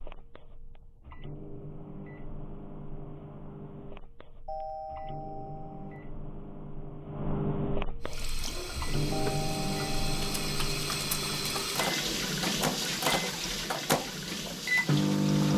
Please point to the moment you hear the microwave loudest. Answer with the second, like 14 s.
15 s.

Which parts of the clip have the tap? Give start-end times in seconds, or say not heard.
8.0-15.5.